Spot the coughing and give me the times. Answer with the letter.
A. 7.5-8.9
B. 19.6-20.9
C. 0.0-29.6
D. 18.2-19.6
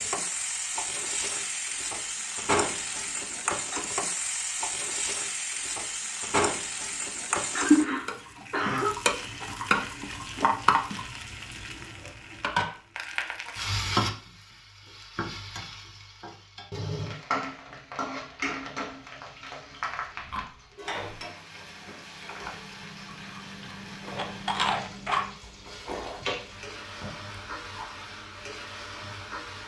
A.